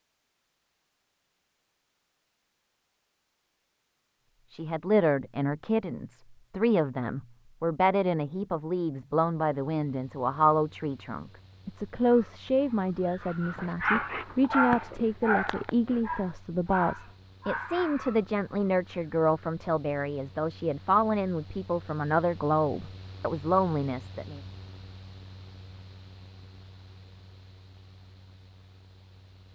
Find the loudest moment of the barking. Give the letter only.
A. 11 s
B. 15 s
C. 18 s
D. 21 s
B.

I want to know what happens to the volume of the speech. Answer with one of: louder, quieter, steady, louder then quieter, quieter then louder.
steady.